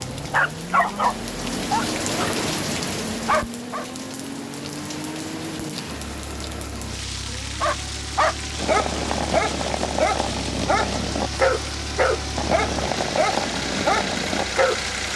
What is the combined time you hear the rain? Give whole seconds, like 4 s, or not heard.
15 s.